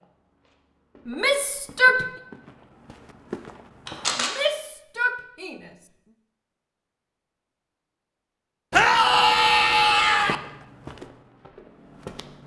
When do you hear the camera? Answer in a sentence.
You can hear the camera from 3.9 to 4.3 s.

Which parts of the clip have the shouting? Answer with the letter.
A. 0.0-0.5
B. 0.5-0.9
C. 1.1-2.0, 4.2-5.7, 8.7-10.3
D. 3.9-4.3
C.